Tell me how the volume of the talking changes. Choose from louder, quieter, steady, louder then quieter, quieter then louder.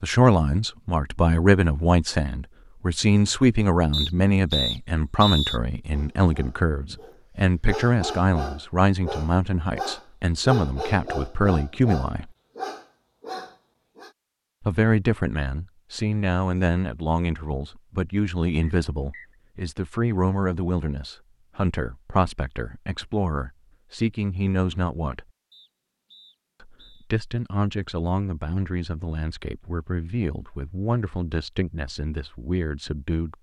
quieter.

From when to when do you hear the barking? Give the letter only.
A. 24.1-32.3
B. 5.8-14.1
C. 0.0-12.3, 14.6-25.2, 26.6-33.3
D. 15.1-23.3
B.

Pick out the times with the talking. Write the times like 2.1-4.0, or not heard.
0.0-12.3, 14.6-25.2, 26.6-33.3.